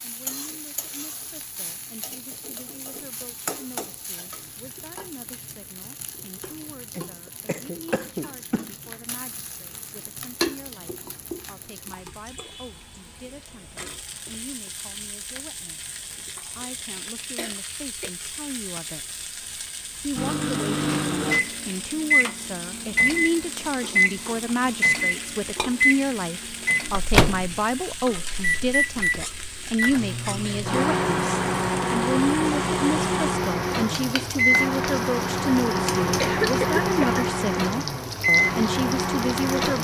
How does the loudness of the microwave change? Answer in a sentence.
The loudness of the microwave stays about the same.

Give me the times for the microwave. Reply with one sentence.
You can hear the microwave from 20.1 to 39.7 s.